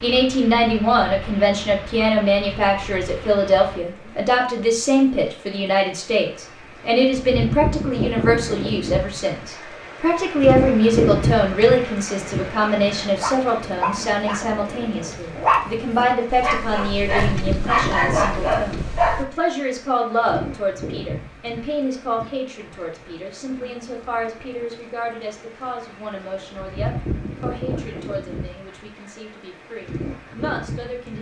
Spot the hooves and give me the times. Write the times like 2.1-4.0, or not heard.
not heard.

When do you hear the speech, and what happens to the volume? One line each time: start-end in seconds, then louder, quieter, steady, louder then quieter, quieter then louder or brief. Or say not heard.
0.0-31.1 quieter.